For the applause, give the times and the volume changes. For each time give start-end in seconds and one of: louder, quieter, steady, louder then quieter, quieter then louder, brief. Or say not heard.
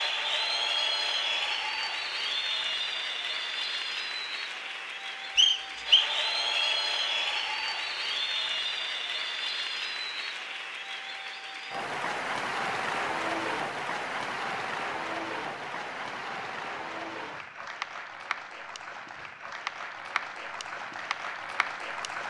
0.0-22.2 quieter.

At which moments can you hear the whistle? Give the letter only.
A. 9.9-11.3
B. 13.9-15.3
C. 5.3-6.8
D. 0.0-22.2
C.